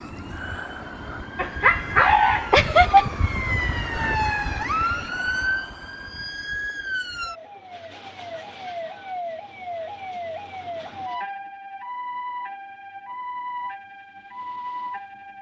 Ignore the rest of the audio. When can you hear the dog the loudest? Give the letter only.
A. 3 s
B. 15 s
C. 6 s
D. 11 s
A.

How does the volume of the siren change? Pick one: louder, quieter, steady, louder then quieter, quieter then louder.
louder then quieter.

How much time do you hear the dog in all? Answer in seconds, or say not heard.
2 s.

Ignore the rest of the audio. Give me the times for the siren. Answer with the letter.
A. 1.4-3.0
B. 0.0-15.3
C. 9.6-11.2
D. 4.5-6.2
B.